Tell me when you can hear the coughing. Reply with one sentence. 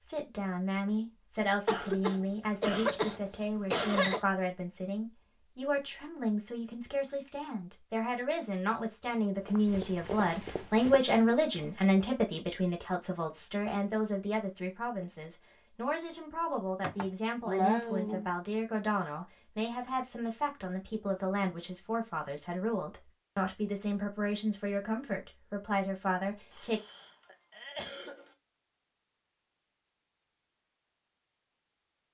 You can hear the coughing from 1.6 to 4.2 s, from 16.8 to 18.3 s and from 26.5 to 28.4 s.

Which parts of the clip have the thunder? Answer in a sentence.
You can't hear the thunder here.